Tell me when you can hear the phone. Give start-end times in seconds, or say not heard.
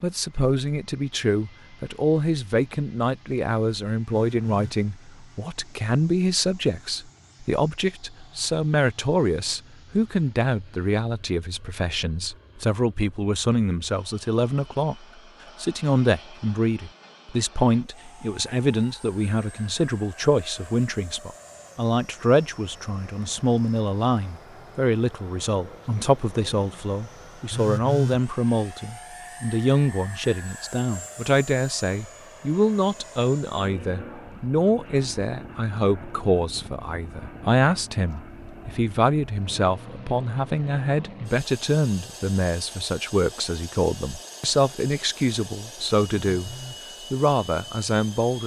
4.0-4.8, 27.5-28.2, 46.2-46.8.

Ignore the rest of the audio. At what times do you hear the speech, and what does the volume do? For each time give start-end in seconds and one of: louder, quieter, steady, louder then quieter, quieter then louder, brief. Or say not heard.
0.0-48.4 steady.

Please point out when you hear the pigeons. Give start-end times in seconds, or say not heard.
not heard.